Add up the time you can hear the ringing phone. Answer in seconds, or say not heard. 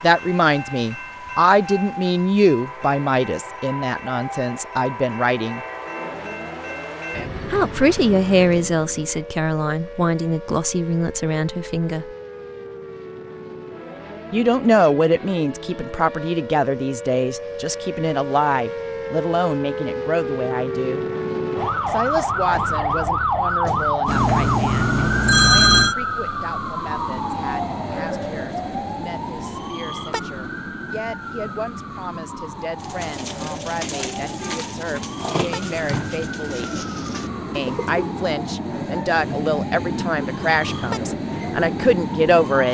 2 s.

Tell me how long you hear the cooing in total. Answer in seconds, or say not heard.
5 s.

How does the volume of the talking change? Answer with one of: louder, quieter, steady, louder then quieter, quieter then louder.
quieter then louder.